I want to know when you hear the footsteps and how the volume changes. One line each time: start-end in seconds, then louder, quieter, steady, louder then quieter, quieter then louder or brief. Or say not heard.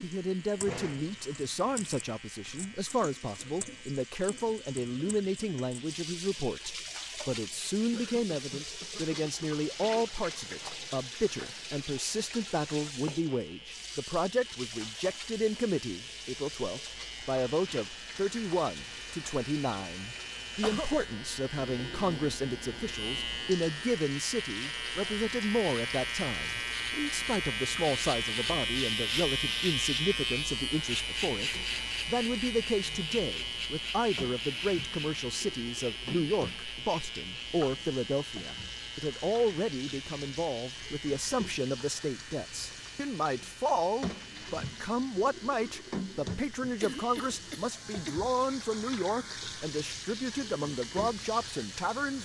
not heard.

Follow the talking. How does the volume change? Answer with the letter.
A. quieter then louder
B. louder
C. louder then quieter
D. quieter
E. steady
E.